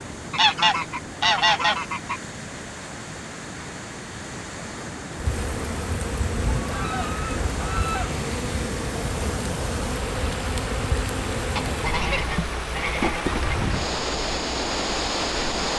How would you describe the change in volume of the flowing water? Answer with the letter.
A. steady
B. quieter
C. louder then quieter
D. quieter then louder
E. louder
E.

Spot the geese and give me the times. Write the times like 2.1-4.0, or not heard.
0.3-2.2, 6.5-8.2, 11.6-13.6.